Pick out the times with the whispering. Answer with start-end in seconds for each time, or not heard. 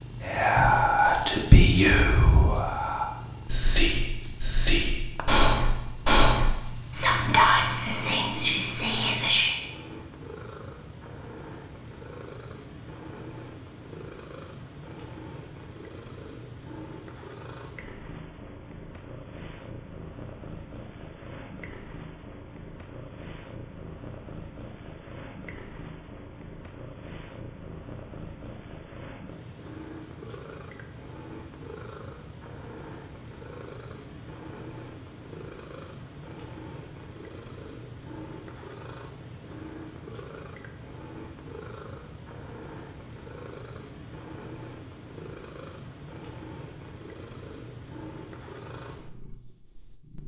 0.2-9.5.